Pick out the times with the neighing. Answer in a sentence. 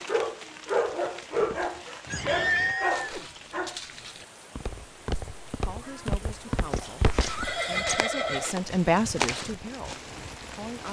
You can hear the neighing from 2.1 to 3.2 s and from 6.8 to 8.6 s.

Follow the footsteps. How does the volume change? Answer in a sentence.
The volume of the footsteps goes up.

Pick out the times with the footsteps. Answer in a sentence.
The footsteps can be heard from 1.4 to 10.2 s.